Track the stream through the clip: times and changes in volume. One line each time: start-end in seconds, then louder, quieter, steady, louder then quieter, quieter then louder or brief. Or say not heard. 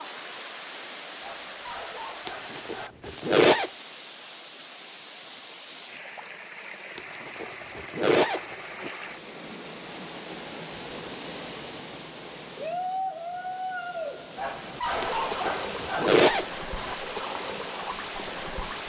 0.0-18.8 louder.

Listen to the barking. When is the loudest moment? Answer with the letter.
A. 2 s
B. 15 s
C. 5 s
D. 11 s
B.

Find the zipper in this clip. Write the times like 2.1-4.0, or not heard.
2.2-3.7, 7.0-8.9, 15.0-16.4.